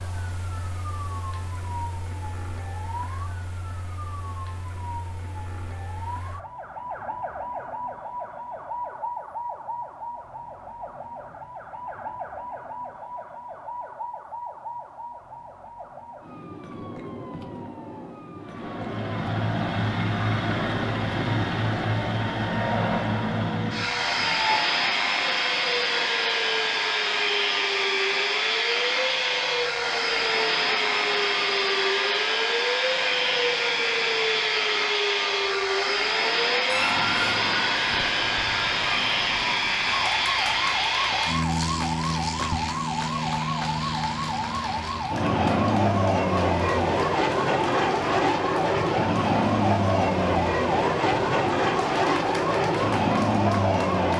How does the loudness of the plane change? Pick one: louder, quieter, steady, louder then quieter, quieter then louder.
steady.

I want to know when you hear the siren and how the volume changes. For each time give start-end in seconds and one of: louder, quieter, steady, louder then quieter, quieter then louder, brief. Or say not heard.
0.0-54.1 louder.